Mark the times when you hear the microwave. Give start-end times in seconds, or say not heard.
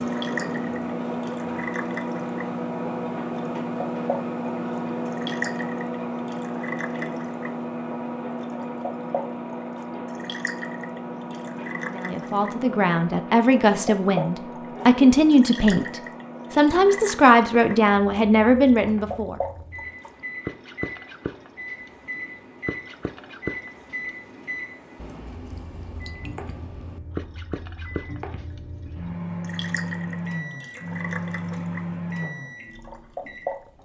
0.0-33.7.